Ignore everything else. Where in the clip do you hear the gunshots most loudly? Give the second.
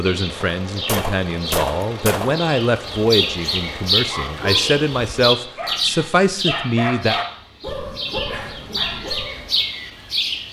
2 s.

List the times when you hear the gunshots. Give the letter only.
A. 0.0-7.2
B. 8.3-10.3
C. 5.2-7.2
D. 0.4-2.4
D.